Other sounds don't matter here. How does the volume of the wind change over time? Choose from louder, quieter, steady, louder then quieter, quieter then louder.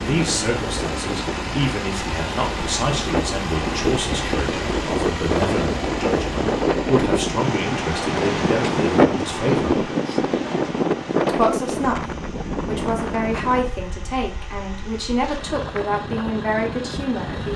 louder then quieter.